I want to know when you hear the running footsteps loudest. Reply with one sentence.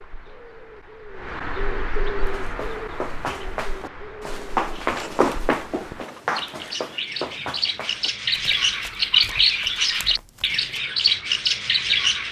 The loudest moment of the running footsteps is at 5 seconds.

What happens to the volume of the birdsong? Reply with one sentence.
The volume of the birdsong goes up.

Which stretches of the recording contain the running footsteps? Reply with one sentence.
The running footsteps can be heard from 2.2 to 10.7 s.